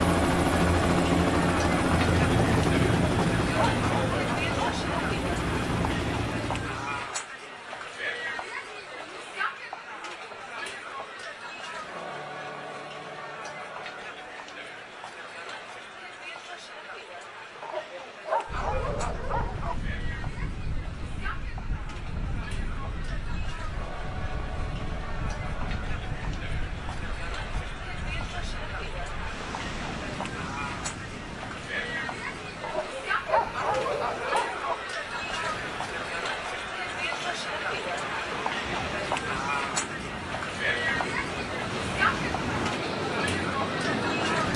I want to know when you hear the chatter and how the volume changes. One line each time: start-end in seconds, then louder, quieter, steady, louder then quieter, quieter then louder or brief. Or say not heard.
0.0-44.5 quieter then louder.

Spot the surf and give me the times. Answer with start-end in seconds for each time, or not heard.
18.4-44.5.